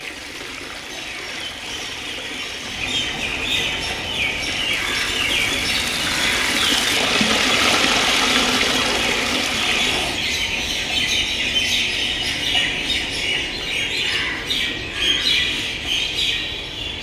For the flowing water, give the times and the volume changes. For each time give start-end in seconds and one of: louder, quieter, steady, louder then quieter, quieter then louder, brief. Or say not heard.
0.0-10.2 louder.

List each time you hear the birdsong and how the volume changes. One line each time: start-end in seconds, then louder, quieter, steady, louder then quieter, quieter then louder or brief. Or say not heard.
0.0-16.9 louder.